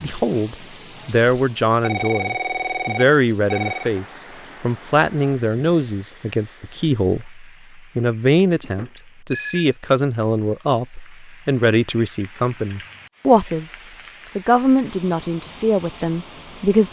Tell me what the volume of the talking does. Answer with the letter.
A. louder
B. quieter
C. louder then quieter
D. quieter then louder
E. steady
E.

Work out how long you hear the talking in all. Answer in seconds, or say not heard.
17 s.